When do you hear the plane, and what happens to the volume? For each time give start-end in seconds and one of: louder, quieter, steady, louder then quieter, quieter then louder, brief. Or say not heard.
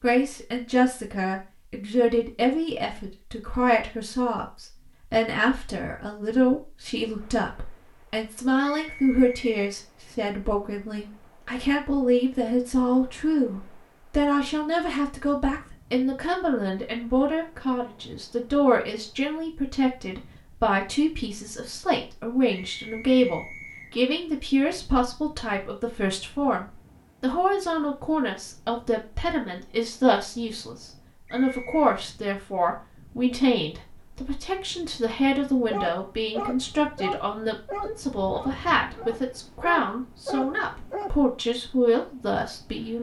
not heard.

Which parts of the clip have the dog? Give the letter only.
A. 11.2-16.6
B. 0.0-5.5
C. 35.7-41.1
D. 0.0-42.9
C.